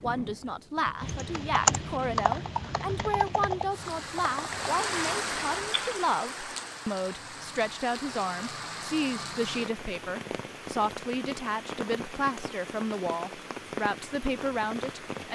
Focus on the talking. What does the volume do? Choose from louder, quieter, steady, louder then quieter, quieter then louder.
steady.